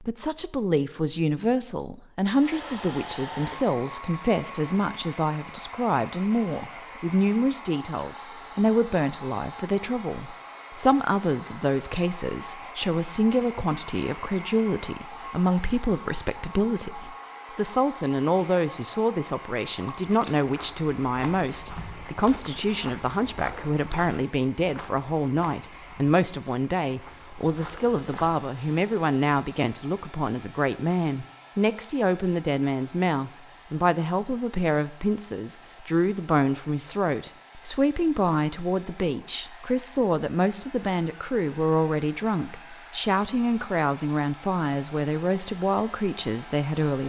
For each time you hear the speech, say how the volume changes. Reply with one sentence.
You can hear the speech from 0.0 to 47.0 s, at a steady volume.